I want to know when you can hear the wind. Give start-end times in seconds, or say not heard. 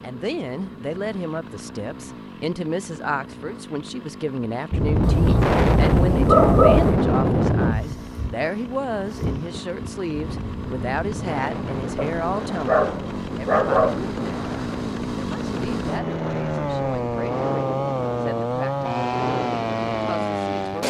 4.7-20.8.